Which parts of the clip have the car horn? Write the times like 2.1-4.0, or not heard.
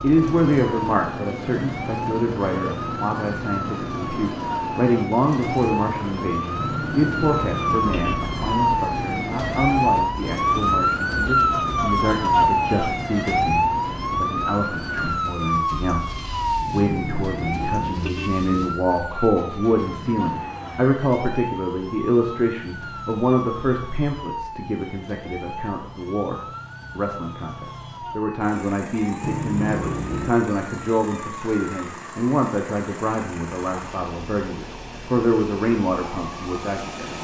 6.6-8.2, 16.7-18.8, 29.2-30.4.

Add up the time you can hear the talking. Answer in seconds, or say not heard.
37 s.